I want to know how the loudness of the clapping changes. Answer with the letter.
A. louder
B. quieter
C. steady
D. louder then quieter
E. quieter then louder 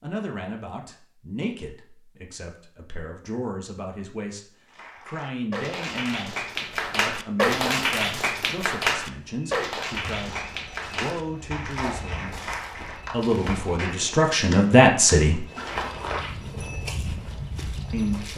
D.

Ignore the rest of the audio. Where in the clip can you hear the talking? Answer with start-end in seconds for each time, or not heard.
0.0-15.4, 17.9-18.3.